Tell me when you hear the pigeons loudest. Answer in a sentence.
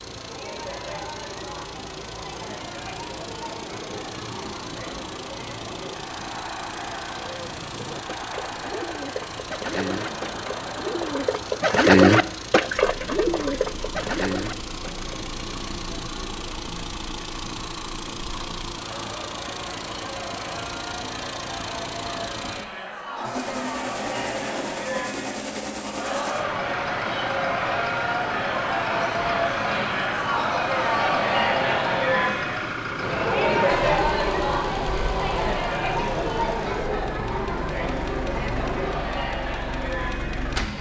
The loudest moment of the pigeons is at 12 seconds.